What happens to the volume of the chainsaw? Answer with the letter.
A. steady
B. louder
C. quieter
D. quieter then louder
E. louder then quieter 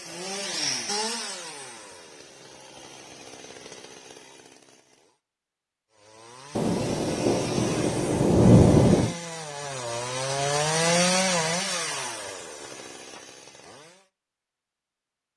D.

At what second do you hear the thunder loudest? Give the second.
9 s.